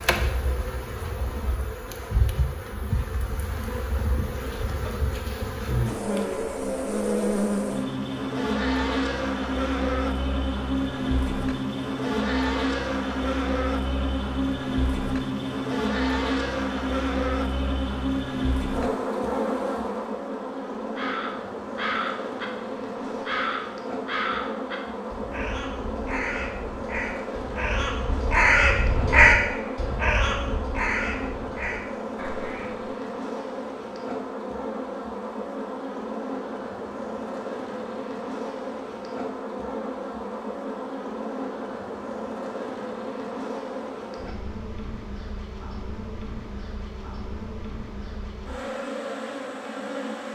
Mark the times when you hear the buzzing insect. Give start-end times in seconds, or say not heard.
0.0-50.3.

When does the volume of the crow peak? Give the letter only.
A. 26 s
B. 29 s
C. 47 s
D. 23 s
B.